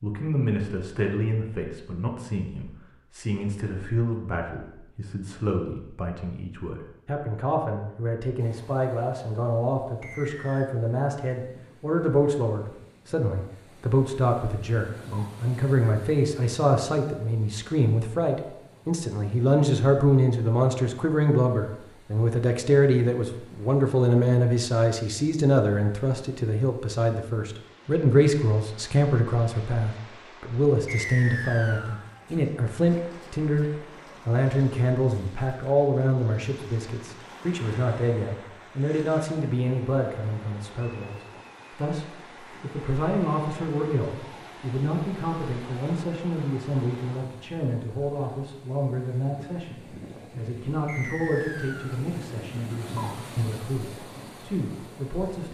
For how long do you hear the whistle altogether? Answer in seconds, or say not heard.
3 s.